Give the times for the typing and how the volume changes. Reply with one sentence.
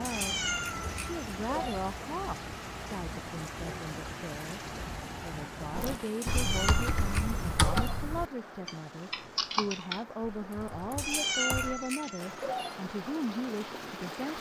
You can hear the typing from 5.7 to 12.1 s, getting quieter.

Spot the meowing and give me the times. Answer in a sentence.
The meowing can be heard from 0.1 to 1.9 s, from 6.2 to 8.0 s and from 10.9 to 12.8 s.